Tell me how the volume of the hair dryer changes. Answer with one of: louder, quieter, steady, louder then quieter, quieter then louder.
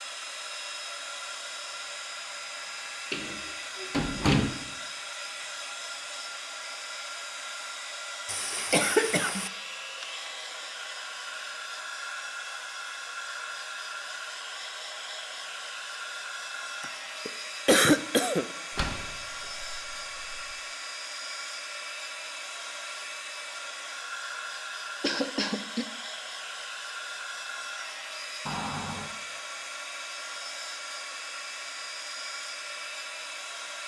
steady.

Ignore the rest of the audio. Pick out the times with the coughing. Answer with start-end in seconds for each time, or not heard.
8.2-9.5, 16.8-18.4, 25.0-25.9.